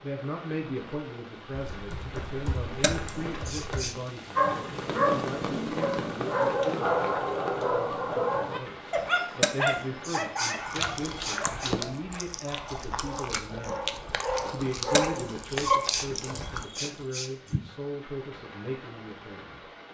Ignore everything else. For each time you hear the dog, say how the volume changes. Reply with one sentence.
You can hear the dog from 4.3 to 15.8 s, getting quieter then louder.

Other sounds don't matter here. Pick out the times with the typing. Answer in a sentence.
You can hear the typing from 1.5 to 4.0 s and from 10.7 to 11.9 s.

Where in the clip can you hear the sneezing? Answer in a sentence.
The sneezing can be heard from 2.8 to 4.0 s, from 9.4 to 11.8 s and from 14.9 to 17.6 s.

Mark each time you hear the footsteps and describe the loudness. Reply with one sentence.
You can't hear the footsteps here.